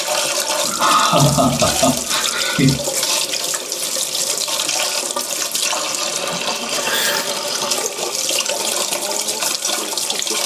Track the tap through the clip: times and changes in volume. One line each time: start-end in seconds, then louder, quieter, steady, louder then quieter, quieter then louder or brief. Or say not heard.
0.0-10.4 steady.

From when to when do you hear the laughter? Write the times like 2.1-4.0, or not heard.
0.6-2.8, 6.3-7.3.